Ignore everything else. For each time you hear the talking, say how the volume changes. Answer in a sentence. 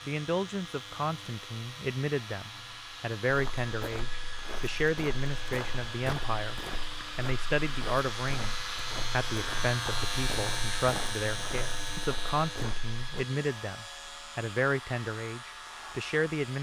The talking can be heard from 0.1 to 16.5 s, at a steady volume.